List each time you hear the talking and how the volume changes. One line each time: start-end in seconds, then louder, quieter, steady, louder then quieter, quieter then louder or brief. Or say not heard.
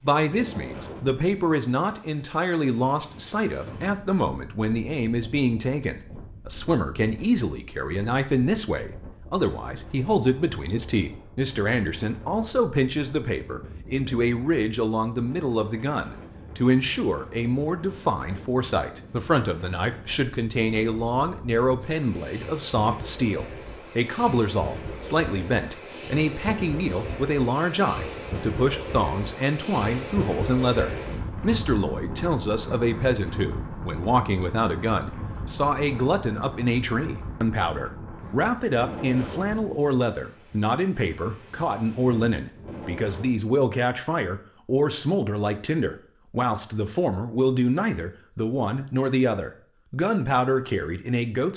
0.0-51.5 steady.